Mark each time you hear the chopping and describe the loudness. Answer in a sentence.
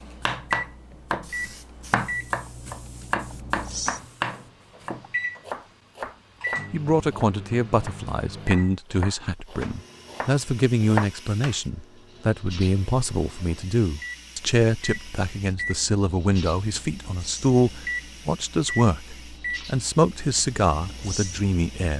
The chopping can be heard from 0.2 to 11.6 s, getting quieter then louder.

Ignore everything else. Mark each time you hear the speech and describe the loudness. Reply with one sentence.
The speech can be heard from 6.7 to 21.9 s, at a steady volume.